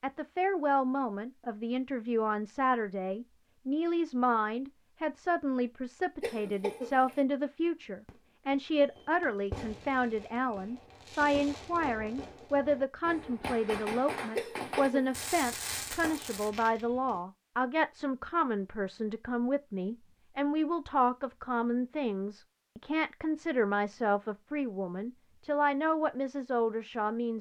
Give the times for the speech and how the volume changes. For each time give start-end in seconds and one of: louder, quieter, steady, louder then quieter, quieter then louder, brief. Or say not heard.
0.0-27.3 steady.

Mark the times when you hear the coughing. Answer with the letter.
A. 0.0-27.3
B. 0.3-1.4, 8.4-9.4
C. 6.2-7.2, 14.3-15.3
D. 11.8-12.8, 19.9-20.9
C.